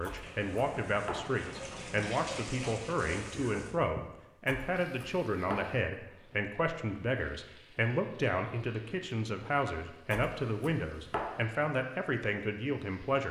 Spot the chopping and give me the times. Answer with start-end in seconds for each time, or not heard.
0.0-1.4, 4.5-5.8, 10.1-11.4.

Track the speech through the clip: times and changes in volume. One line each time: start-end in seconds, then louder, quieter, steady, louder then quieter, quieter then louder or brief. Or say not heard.
0.0-13.2 steady.